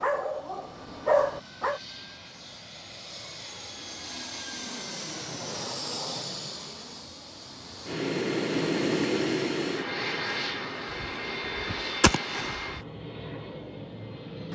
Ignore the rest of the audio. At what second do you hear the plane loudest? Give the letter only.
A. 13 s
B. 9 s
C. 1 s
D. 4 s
B.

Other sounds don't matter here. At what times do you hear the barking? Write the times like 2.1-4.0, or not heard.
0.0-1.8.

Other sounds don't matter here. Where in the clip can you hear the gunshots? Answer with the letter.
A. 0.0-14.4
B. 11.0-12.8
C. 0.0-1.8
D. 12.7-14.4
B.